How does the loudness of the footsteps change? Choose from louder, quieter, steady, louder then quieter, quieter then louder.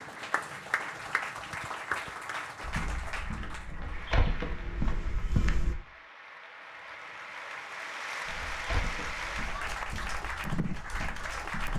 louder then quieter.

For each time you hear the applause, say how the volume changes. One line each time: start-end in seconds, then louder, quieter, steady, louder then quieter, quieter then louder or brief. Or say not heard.
0.0-11.7 quieter then louder.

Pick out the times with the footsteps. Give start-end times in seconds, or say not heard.
2.6-5.8, 8.2-11.7.